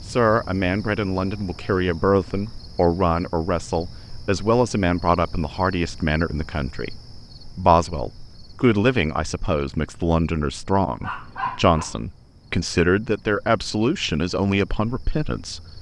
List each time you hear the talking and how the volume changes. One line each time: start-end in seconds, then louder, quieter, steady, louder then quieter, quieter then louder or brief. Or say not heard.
0.1-15.7 steady.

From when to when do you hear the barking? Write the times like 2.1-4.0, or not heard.
11.0-12.1.